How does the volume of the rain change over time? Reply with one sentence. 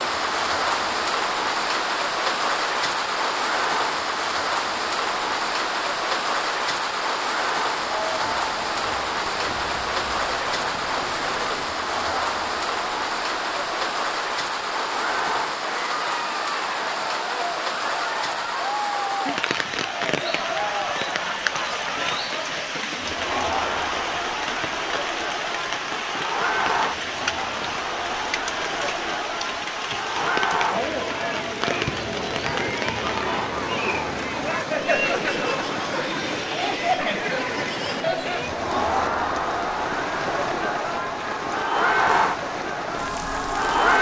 The volume of the rain goes down.